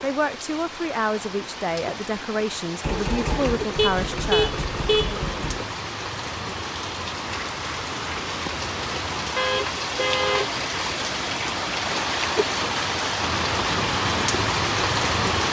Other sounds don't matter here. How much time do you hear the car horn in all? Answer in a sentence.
You can hear the car horn for 3 seconds altogether.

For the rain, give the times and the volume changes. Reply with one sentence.
You can hear the rain from 0.0 to 15.4 s, getting louder.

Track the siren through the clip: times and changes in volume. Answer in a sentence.
You can't hear the siren here.